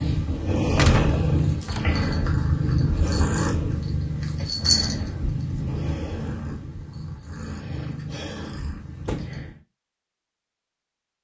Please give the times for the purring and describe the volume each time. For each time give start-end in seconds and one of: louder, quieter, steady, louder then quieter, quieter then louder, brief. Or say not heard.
0.0-9.6 quieter.